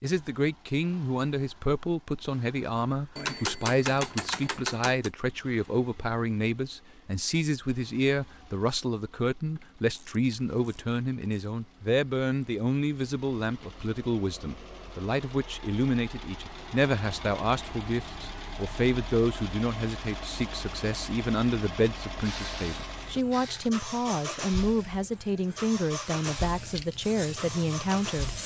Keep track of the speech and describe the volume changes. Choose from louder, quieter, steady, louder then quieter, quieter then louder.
steady.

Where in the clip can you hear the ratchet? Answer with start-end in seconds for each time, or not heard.
3.1-5.1, 9.6-11.4, 22.2-23.7.